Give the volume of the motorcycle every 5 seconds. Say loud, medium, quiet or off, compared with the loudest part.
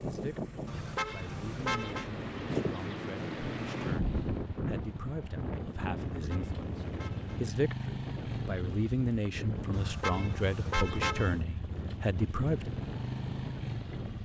medium, loud, loud.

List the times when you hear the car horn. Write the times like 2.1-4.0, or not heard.
0.7-2.0, 6.1-7.4, 9.7-11.4.